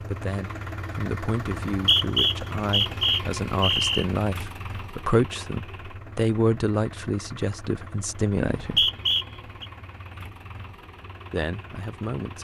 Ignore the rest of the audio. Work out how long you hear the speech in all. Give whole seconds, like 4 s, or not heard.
10 s.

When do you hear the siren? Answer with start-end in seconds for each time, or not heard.
not heard.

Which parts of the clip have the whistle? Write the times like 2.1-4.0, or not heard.
1.7-4.0, 8.3-9.7.